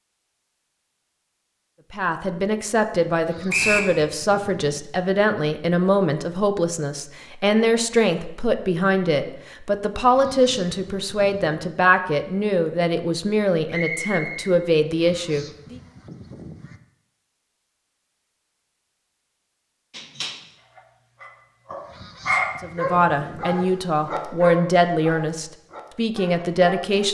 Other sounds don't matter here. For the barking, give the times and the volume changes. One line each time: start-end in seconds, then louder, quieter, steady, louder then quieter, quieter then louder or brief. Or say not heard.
19.9-27.0 louder then quieter.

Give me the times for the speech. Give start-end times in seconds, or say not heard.
1.9-15.8, 22.6-27.0.